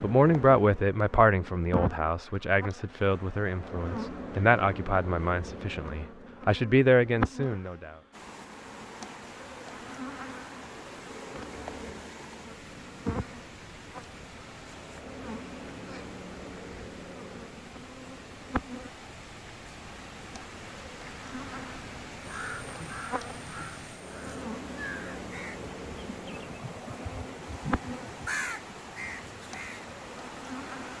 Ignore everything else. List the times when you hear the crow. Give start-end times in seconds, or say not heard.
22.2-29.9.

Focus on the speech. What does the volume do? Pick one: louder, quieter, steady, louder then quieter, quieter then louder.
quieter then louder.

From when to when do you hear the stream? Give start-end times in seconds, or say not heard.
8.1-30.9.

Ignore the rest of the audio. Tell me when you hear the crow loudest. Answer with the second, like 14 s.
28 s.